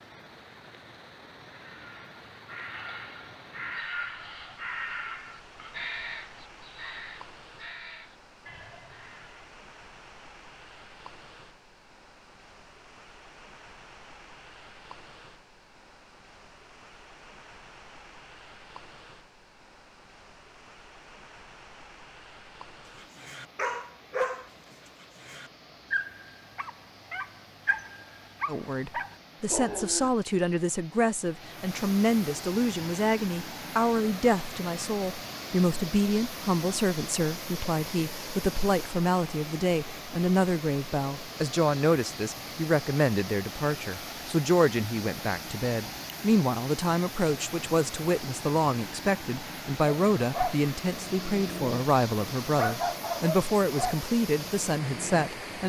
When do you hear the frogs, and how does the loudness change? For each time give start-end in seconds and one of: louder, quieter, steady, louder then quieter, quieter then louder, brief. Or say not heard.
not heard.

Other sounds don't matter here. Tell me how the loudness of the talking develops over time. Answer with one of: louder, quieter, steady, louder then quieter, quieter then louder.
steady.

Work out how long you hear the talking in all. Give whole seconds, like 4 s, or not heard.
27 s.